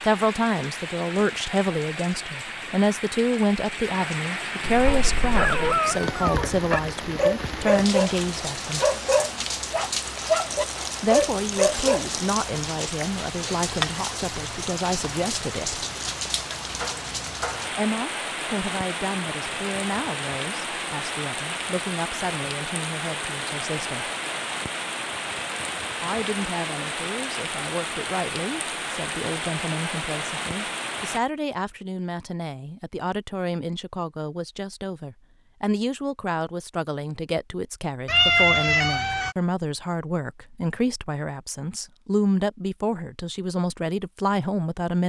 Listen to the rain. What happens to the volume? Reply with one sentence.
The loudness of the rain stays about the same.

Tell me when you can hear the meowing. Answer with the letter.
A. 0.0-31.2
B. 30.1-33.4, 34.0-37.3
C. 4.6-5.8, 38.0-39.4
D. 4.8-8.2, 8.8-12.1
C.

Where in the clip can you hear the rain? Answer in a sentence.
The rain can be heard from 0.0 to 31.2 s.